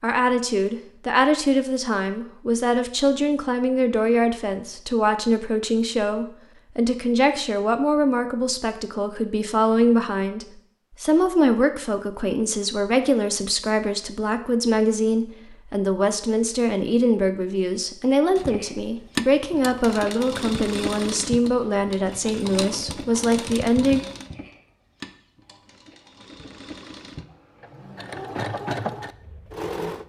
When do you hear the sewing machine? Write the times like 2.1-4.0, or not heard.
18.4-30.0.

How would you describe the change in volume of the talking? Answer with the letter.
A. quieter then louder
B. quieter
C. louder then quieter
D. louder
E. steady
E.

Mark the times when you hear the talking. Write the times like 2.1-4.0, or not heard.
0.0-24.0.